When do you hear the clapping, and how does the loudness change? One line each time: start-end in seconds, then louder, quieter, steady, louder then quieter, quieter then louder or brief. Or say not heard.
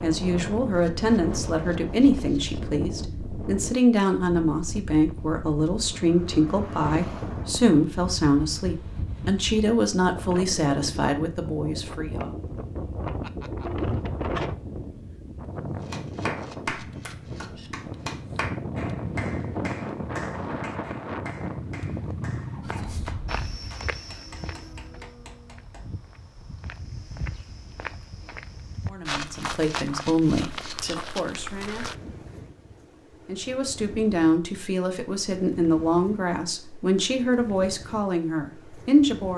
15.8-25.9 quieter.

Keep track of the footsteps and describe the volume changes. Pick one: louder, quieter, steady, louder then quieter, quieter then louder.
quieter then louder.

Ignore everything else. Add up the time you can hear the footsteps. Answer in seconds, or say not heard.
9 s.